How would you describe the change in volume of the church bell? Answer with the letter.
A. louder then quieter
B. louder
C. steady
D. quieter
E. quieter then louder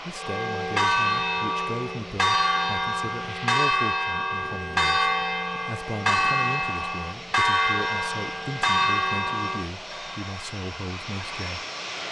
C.